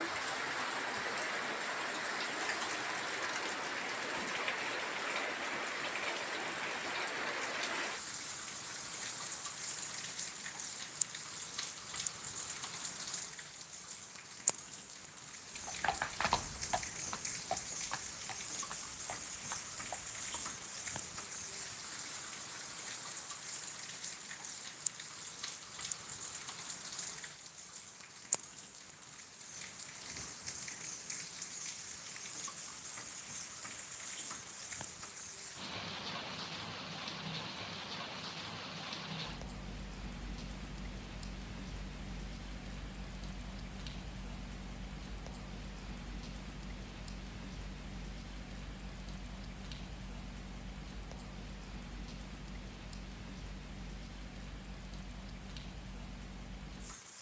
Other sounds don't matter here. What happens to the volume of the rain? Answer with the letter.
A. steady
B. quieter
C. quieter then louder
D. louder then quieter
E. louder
B.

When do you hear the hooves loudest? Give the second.
16 s.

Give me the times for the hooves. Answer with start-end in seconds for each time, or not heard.
15.6-20.5.